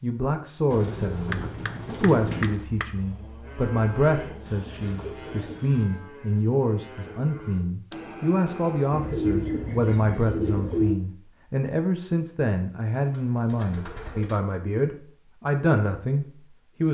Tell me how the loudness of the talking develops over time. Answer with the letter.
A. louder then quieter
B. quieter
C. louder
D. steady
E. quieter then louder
D.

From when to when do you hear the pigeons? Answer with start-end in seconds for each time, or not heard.
0.7-2.6, 4.5-6.0, 8.9-10.9, 13.0-14.4.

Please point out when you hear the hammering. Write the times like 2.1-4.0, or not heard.
1.3-2.9.